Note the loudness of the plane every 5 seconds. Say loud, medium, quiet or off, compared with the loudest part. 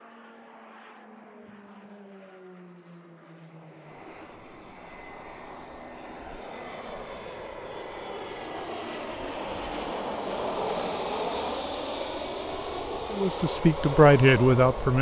quiet, medium, loud.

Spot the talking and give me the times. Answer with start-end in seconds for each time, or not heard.
13.1-14.9.